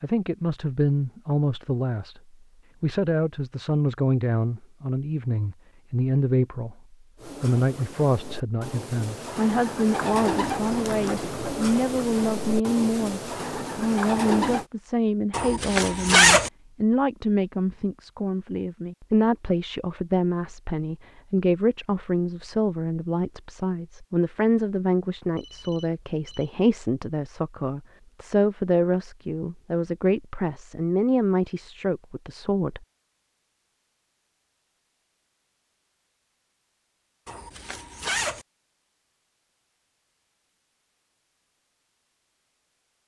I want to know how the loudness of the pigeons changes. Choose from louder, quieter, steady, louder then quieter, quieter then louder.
louder.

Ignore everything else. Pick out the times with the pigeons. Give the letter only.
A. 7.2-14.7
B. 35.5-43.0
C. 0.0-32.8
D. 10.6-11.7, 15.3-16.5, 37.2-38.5
A.